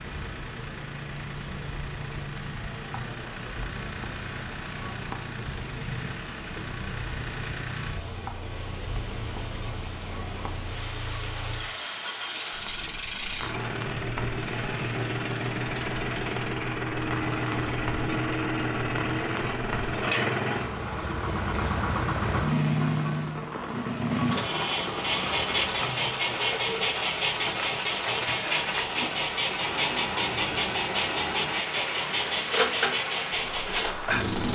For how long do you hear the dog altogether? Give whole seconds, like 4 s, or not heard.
not heard.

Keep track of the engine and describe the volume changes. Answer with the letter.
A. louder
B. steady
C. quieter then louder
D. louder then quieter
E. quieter
A.